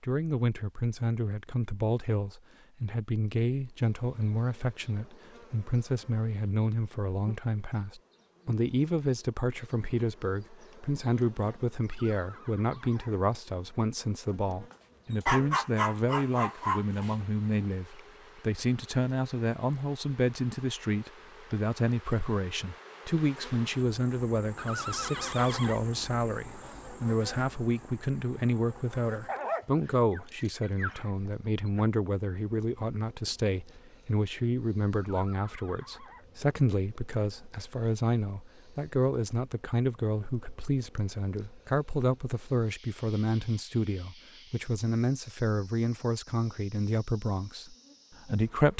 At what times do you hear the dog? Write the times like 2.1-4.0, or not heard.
14.7-17.2, 29.2-31.9.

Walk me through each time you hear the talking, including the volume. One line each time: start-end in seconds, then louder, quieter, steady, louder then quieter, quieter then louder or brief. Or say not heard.
0.0-48.7 steady.